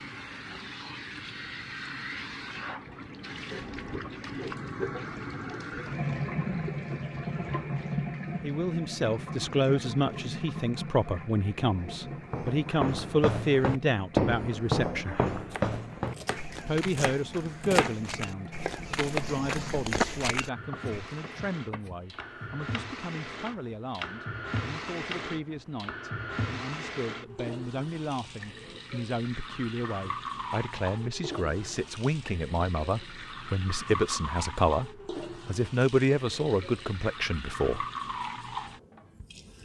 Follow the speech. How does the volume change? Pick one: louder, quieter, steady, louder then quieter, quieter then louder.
quieter then louder.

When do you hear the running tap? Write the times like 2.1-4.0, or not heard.
0.0-39.6.